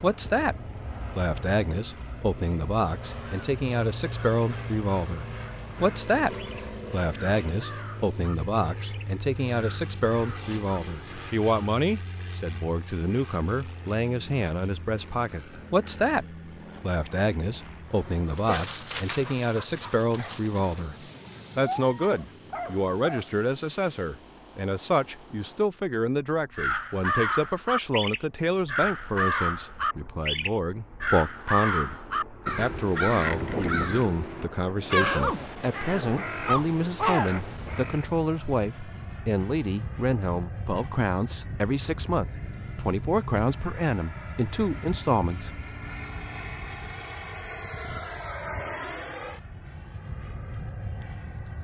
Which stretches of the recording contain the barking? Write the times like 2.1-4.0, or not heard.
18.3-23.4.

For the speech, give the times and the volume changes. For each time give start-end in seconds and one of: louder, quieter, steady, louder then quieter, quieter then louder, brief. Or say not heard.
0.0-0.6 brief
1.1-20.9 steady
21.6-31.9 steady
32.5-45.5 steady.